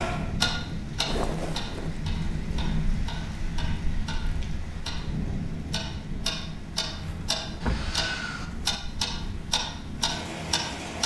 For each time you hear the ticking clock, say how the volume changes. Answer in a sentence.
The ticking clock can be heard from 0.0 to 11.0 s, getting quieter then louder.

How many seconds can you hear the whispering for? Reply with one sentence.
You can't hear the whispering here.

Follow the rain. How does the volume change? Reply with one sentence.
The volume of the rain goes down.